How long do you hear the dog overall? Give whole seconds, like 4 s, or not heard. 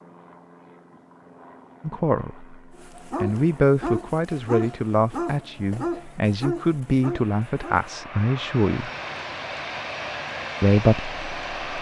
5 s.